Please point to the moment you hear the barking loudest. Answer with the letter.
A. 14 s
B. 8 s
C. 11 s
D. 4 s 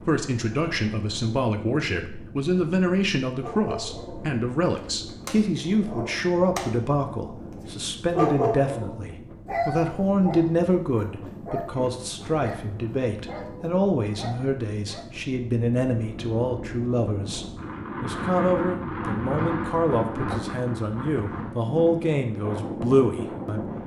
B.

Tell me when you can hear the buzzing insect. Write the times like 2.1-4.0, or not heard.
not heard.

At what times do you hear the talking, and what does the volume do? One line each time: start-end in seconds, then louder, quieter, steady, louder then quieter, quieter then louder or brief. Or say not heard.
0.0-23.7 steady.